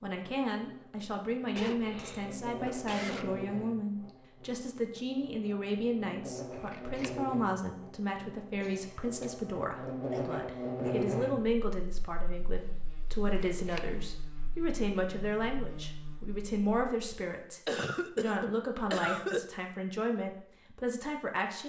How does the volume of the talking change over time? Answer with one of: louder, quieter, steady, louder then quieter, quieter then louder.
steady.